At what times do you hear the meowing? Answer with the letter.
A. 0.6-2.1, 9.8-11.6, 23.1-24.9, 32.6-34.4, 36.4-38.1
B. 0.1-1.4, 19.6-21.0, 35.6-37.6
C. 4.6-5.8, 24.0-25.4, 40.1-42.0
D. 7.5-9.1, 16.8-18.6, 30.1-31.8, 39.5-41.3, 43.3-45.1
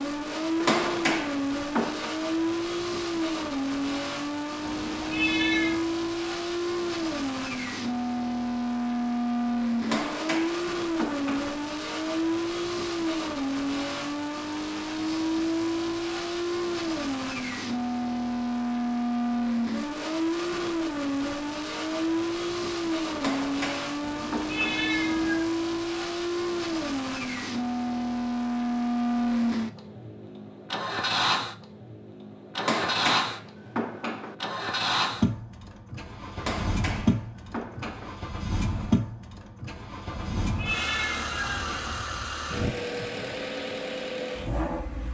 C.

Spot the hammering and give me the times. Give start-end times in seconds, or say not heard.
0.6-2.1, 9.8-11.6, 23.1-24.9, 32.6-34.4, 36.4-38.1.